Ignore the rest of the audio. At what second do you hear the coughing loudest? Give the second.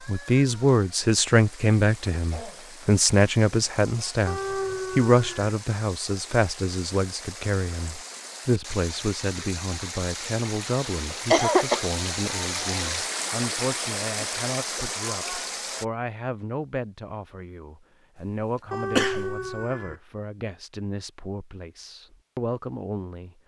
11 s.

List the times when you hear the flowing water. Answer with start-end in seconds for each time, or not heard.
0.0-15.8.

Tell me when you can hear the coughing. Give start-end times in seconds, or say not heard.
2.1-2.9, 10.8-11.8, 18.9-19.6.